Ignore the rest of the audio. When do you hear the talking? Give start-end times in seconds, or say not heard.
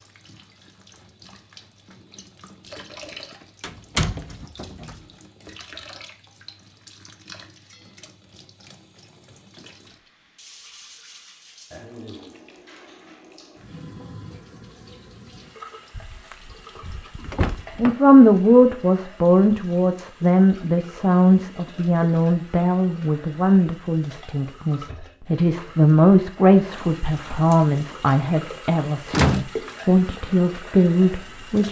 17.8-31.6.